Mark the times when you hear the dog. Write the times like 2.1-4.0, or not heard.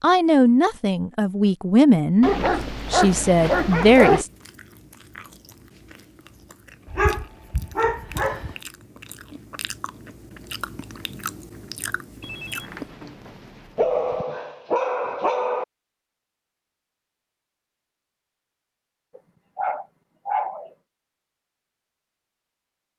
2.2-4.2, 6.9-8.6, 13.8-15.7, 19.1-20.7.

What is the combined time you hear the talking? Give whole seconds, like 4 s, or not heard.
4 s.